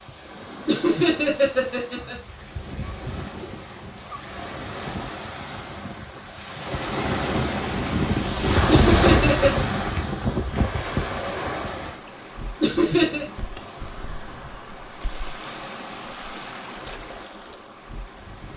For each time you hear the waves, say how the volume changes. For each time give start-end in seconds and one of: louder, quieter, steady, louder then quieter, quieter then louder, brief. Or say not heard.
0.0-18.5 louder then quieter.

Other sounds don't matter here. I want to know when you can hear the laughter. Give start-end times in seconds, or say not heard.
0.7-2.1, 8.7-9.7, 12.6-13.2.